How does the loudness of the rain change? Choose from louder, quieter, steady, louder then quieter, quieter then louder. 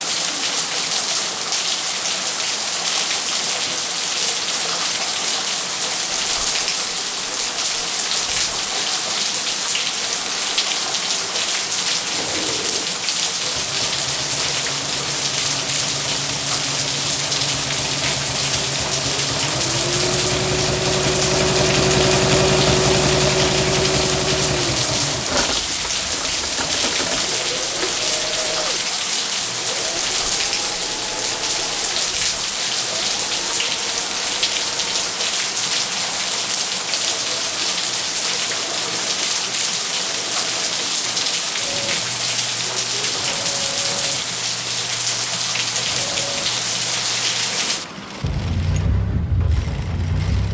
steady.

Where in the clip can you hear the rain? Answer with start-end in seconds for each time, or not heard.
0.0-50.5.